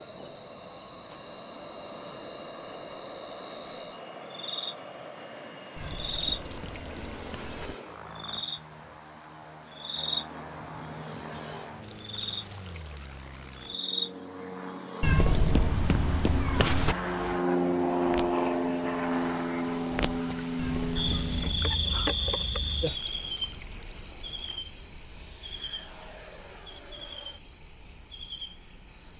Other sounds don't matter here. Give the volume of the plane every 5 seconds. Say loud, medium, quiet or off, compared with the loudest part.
quiet, quiet, quiet, loud, medium, quiet.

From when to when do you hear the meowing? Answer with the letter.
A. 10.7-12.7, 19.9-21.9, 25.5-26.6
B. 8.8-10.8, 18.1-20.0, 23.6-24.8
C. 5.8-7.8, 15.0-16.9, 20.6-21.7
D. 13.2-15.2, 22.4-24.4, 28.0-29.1
C.